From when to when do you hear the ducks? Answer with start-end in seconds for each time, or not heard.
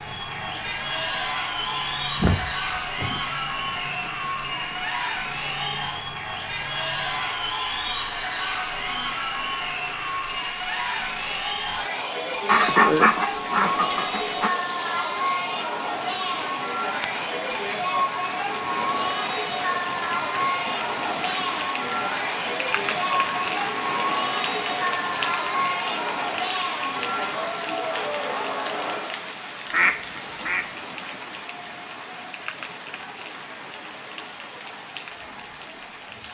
1.8-3.4, 12.4-14.5, 29.7-30.6.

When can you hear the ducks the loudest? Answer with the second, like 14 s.
13 s.